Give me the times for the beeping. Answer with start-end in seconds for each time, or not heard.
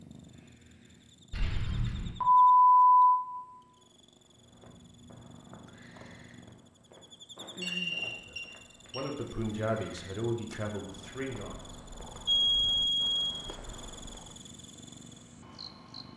1.3-3.1, 7.6-9.1, 12.2-13.3.